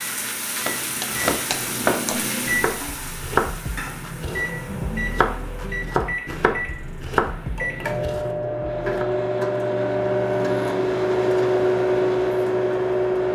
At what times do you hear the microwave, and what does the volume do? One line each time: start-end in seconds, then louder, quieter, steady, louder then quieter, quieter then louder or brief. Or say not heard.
0.0-2.8 brief
4.2-13.3 louder.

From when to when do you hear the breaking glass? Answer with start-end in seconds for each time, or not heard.
1.0-2.3.